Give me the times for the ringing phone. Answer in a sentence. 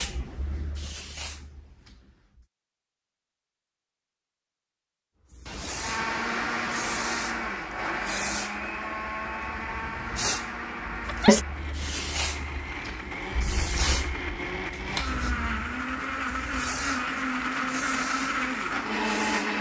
You can't hear the ringing phone here.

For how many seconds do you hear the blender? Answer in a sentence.
The blender can be heard for 14 seconds in total.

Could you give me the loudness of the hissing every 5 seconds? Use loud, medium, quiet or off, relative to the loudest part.
medium, medium, loud, medium.